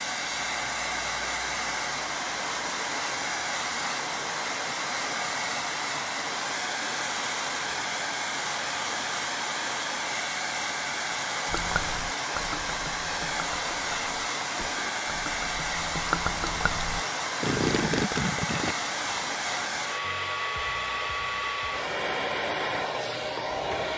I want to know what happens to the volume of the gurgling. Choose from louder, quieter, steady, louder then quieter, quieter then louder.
louder.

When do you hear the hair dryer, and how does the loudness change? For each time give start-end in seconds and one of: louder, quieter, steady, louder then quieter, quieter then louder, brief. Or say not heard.
0.0-23.9 steady.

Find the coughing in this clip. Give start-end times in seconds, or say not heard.
not heard.